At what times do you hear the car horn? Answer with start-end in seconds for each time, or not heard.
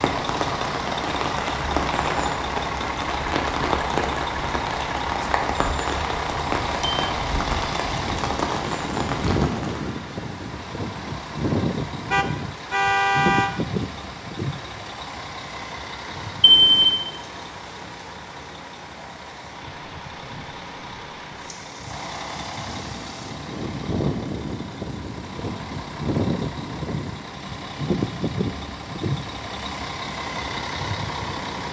12.1-13.5.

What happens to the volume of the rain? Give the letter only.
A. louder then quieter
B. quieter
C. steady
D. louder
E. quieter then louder
B.